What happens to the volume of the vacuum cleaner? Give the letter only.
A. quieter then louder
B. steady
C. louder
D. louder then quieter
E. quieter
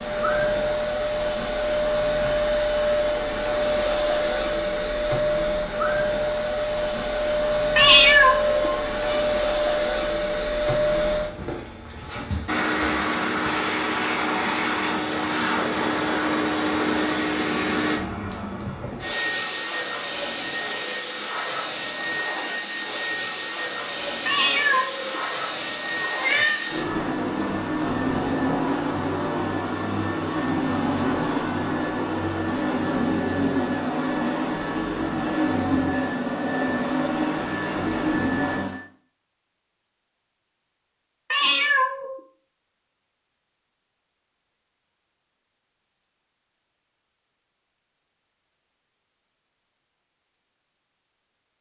B.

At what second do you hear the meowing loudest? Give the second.
8 s.